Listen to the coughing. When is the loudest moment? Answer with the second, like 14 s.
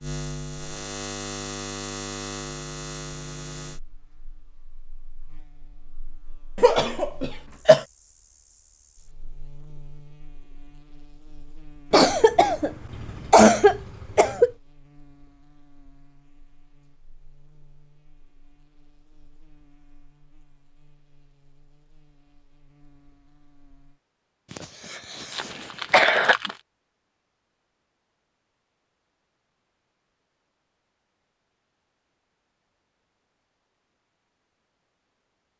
14 s.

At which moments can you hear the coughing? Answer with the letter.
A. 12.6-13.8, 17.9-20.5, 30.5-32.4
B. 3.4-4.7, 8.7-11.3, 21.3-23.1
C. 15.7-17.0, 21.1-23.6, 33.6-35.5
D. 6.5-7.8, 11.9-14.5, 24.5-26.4
D.